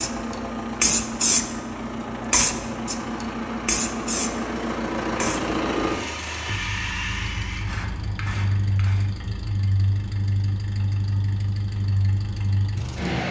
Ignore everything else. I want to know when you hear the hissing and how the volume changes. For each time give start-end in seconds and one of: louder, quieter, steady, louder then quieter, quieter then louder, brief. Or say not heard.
0.0-9.1 quieter.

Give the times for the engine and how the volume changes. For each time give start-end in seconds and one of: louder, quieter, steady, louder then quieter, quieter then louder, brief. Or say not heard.
0.0-13.2 steady.